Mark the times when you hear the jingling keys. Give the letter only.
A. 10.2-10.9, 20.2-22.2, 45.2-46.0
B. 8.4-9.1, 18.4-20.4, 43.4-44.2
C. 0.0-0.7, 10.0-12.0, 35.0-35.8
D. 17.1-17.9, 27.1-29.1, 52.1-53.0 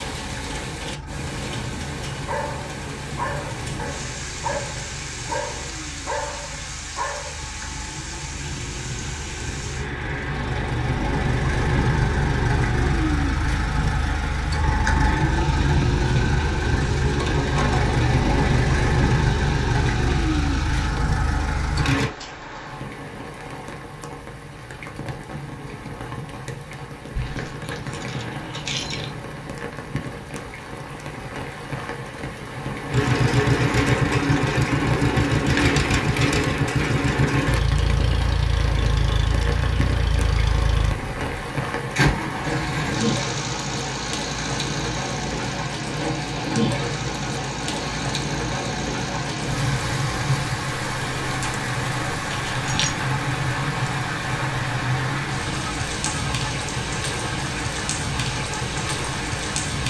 D.